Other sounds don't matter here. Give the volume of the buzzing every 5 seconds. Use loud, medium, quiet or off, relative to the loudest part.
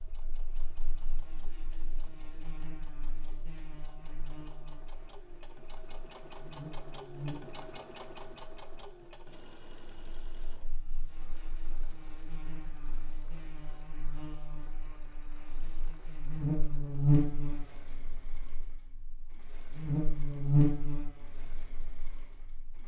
quiet, quiet, quiet, loud, loud.